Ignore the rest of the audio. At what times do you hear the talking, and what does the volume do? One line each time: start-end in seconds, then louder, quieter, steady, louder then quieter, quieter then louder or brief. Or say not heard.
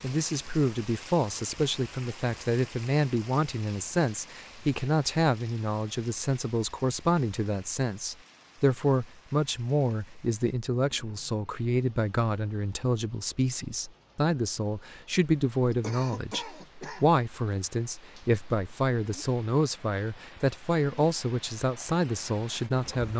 0.0-23.1 steady.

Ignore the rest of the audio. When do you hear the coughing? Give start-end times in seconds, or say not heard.
15.7-17.1.